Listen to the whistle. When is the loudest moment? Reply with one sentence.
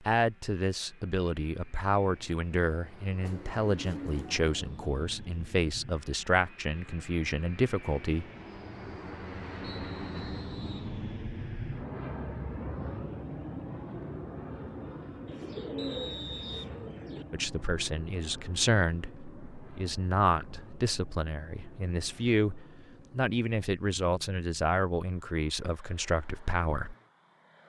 The volume of the whistle peaks at 16 seconds.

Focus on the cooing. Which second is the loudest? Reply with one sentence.
The volume of the cooing peaks at 16 seconds.